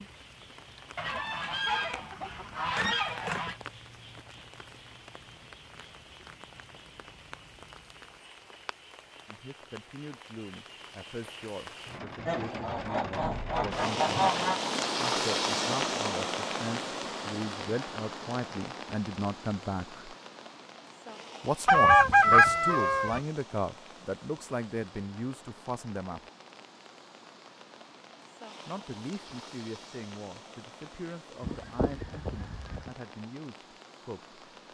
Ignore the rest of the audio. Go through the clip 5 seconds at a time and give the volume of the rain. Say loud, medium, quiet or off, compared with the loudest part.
quiet, quiet, loud, loud, quiet, quiet, quiet.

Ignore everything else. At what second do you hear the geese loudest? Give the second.
22 s.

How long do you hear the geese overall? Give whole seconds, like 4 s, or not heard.
8 s.